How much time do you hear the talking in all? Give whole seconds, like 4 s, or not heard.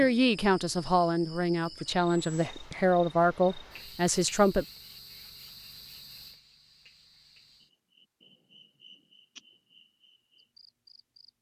5 s.